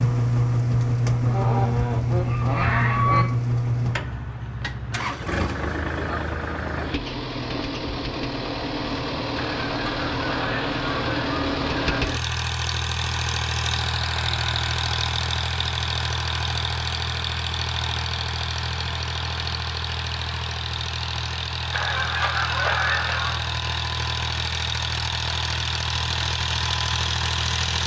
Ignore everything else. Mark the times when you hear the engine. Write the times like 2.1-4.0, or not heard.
0.0-27.8.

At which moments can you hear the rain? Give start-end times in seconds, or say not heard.
not heard.